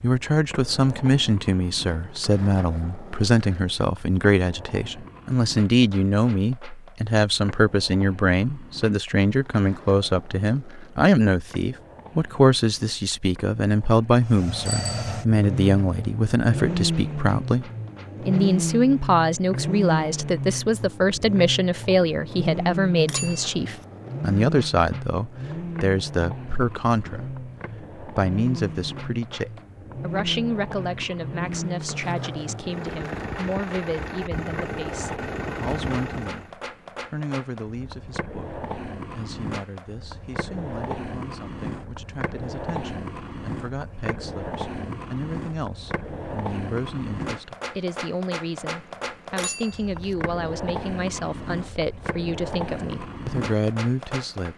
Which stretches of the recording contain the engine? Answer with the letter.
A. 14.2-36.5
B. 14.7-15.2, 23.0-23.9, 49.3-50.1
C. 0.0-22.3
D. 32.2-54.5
A.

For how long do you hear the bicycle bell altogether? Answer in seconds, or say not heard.
2 s.